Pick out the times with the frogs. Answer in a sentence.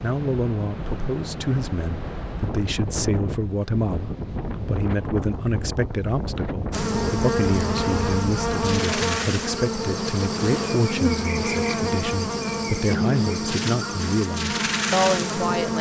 The frogs can't be heard in this clip.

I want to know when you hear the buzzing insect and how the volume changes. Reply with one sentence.
You can hear the buzzing insect from 6.7 to 15.7 s, at a steady volume.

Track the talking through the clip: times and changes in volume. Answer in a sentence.
You can hear the talking from 0.0 to 15.7 s, at a steady volume.